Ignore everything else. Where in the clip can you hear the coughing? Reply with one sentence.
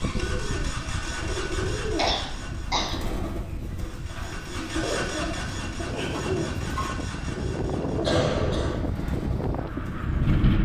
You can hear the coughing from 1.9 to 3.0 s and from 8.0 to 8.8 s.